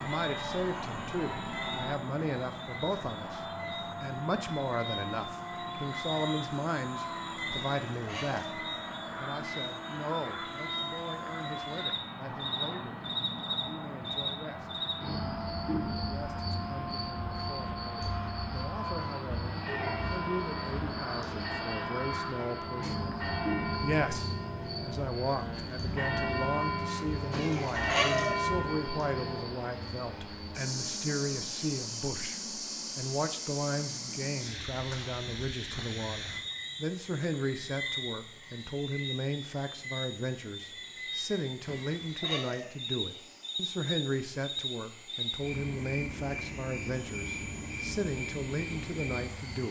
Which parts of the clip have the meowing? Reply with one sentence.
You can hear the meowing from 7.5 to 8.6 s, from 27.3 to 28.4 s and from 41.6 to 42.7 s.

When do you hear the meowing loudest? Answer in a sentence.
The volume of the meowing peaks at 28 seconds.